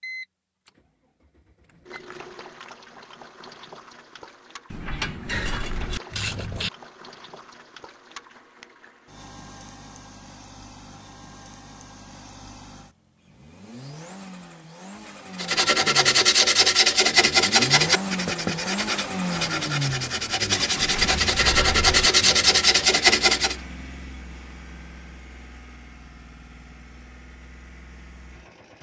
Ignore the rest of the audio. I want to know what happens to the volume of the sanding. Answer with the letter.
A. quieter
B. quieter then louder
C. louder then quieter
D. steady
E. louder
B.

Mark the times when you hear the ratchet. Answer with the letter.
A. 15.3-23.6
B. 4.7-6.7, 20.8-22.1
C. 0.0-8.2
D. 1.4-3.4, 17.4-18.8
B.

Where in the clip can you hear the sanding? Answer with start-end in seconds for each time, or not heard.
15.3-23.6.